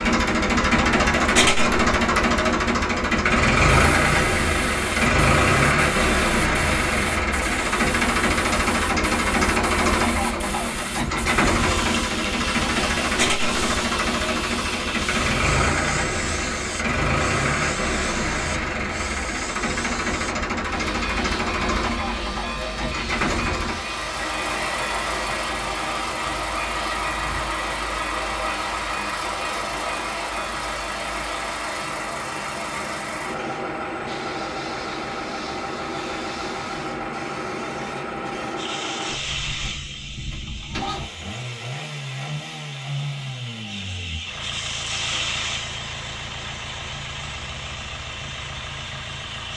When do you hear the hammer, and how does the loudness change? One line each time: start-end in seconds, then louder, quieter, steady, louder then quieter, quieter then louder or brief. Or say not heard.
not heard.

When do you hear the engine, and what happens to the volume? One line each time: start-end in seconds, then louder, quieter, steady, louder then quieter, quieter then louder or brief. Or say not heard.
0.0-49.5 quieter.